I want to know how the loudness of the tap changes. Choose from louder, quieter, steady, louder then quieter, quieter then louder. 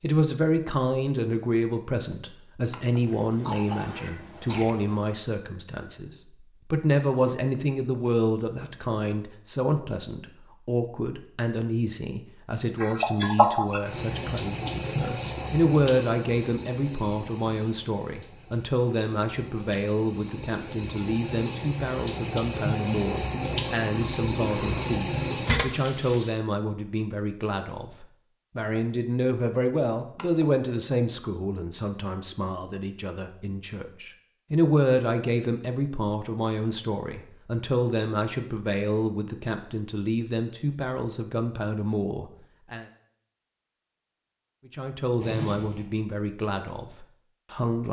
quieter then louder.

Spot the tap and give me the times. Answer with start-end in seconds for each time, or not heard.
12.8-26.4.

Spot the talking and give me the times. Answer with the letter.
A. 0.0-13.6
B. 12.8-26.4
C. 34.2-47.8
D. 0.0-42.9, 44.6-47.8
D.